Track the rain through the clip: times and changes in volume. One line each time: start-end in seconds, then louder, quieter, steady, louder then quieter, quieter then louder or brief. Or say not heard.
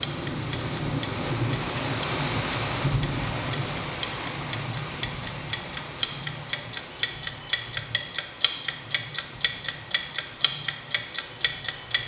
0.0-12.0 quieter.